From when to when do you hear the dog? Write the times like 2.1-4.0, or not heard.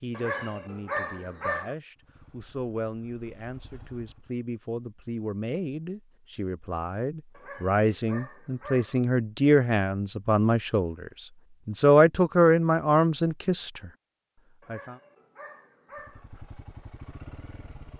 0.1-1.8, 7.3-9.0, 14.6-16.3.